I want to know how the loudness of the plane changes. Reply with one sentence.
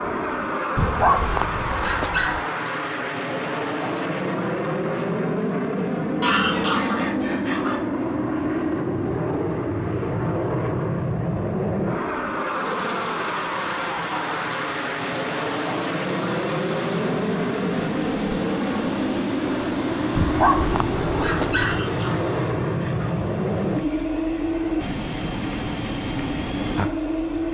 The volume of the plane stays about the same.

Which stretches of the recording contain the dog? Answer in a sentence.
The dog can be heard from 0.8 to 2.4 s and from 20.1 to 21.8 s.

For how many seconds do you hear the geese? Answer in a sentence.
You can hear the geese for 3 seconds altogether.